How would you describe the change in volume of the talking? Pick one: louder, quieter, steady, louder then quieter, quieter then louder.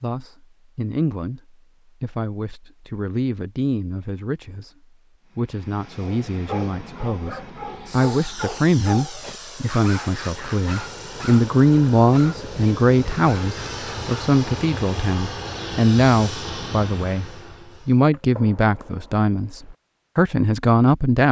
louder.